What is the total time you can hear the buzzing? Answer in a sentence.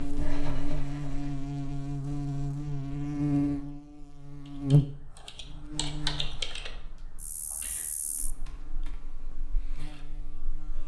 You can hear the buzzing for 11 seconds altogether.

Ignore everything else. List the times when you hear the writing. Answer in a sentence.
You can hear the writing from 0.0 to 1.4 s.